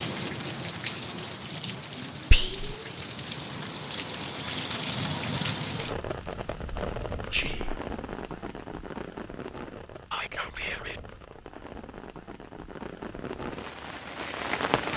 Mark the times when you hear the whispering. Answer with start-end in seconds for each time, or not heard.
2.3-2.8, 7.3-7.8, 10.1-11.0.